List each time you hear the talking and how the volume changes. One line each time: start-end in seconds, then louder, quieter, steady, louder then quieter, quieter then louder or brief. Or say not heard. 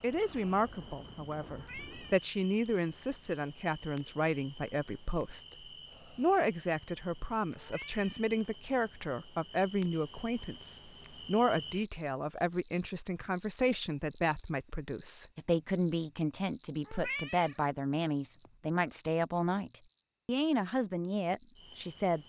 0.0-22.2 steady.